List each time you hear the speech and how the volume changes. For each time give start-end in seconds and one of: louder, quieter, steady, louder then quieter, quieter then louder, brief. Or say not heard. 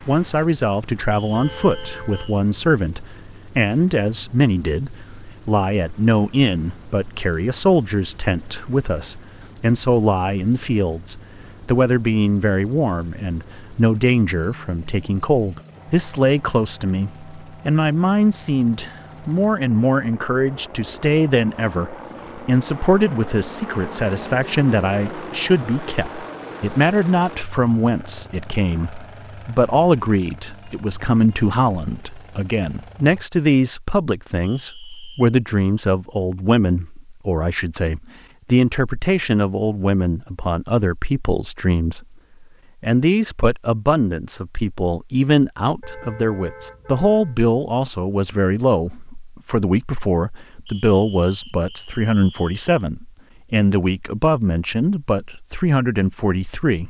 0.1-56.8 steady.